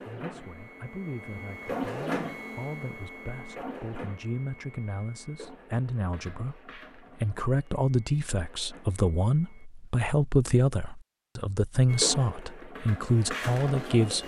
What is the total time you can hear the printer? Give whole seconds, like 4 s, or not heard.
12 s.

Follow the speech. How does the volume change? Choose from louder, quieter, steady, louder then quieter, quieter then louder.
louder.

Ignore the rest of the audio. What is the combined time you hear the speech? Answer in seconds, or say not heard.
14 s.